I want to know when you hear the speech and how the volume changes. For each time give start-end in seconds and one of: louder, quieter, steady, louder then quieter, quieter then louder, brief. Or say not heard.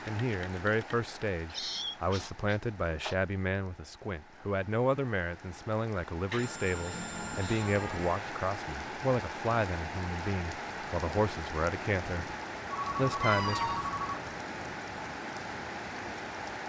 0.1-12.3 steady
12.9-13.7 brief.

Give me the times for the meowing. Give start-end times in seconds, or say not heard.
1.5-3.1, 6.9-8.2, 13.2-13.9.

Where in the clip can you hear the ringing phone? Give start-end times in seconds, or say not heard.
0.1-1.0, 6.3-8.3, 12.7-14.2.